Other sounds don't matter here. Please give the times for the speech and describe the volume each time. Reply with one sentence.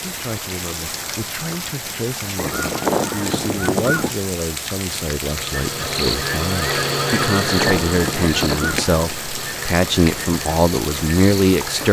You can hear the speech from 0.0 to 11.8 s, getting louder.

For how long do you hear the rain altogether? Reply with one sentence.
The rain can be heard for 12 seconds in total.